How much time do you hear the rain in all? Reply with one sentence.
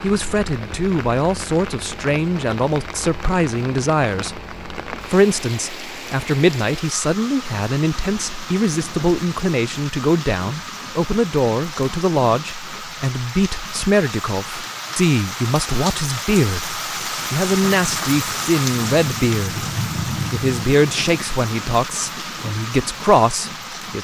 You can hear the rain for 24 seconds altogether.